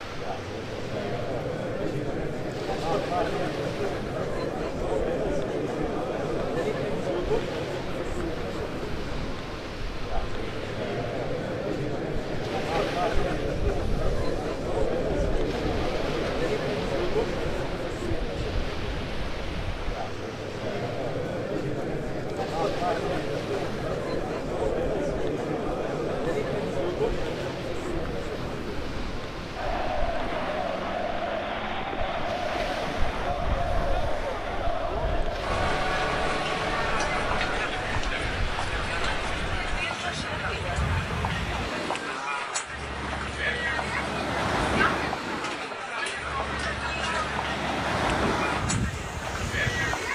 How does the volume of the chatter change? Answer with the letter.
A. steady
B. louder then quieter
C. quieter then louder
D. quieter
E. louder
A.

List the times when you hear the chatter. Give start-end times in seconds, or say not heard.
0.0-50.0.